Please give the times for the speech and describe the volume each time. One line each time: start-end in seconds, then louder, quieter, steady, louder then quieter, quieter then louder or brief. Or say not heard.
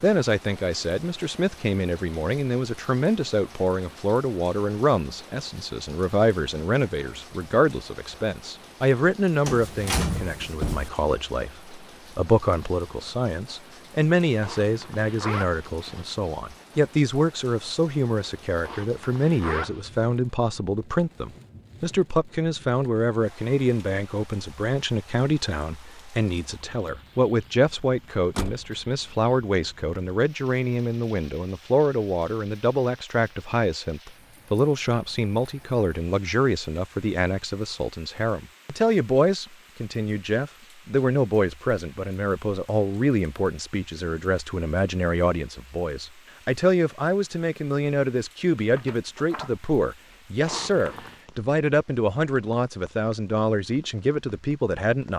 0.0-55.1 steady.